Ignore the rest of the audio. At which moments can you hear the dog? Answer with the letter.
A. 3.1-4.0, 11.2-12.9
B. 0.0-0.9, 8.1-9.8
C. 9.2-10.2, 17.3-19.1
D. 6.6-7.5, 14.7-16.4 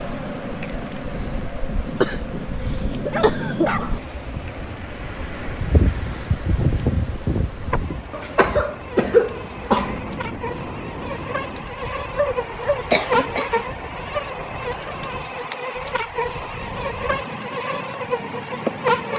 A.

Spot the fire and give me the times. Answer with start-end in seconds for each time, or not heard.
not heard.